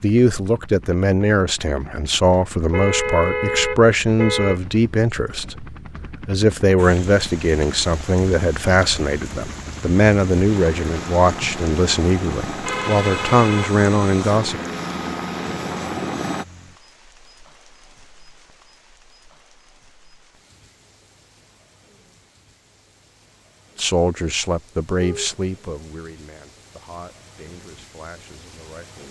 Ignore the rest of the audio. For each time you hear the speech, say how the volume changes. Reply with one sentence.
You can hear the speech from 0.0 to 14.6 s, at a steady volume; and from 23.8 to 29.0 s, getting quieter.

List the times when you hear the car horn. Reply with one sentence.
You can hear the car horn from 2.7 to 4.6 s, from 12.7 to 13.7 s and from 24.9 to 25.4 s.